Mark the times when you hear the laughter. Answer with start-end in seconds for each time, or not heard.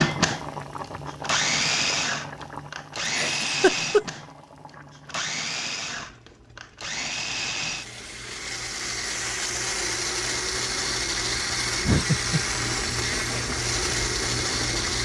3.0-4.0, 11.8-12.4.